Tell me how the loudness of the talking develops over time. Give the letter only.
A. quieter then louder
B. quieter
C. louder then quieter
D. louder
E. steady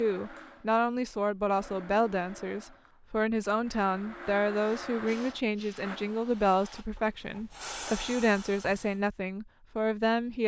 E.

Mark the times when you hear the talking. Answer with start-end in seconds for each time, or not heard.
0.0-10.4.